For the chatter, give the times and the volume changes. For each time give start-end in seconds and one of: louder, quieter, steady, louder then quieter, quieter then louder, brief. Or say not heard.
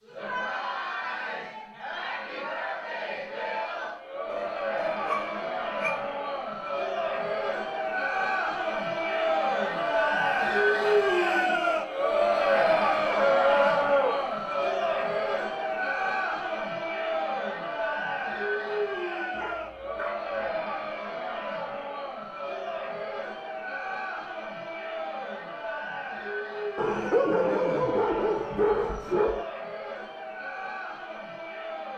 0.0-31.9 louder then quieter.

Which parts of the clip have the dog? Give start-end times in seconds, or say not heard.
4.3-6.0, 13.1-14.2, 19.4-20.3, 26.8-29.4.